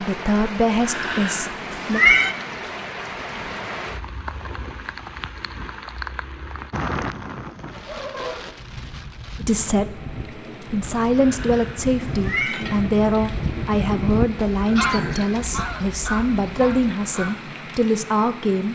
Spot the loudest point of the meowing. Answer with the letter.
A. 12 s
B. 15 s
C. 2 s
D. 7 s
C.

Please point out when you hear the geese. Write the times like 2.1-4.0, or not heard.
7.7-17.4.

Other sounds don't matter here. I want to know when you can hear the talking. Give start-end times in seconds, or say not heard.
0.0-2.0, 9.3-18.7.